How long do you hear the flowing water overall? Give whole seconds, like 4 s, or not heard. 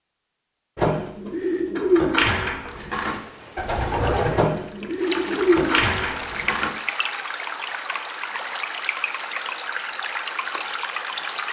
8 s.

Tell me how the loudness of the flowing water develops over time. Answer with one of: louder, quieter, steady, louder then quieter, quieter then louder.
louder.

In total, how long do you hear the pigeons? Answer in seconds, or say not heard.
6 s.